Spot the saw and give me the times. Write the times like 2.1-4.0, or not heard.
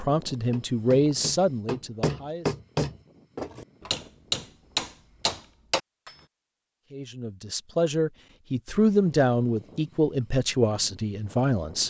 not heard.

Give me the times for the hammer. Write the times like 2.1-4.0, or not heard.
0.5-6.1.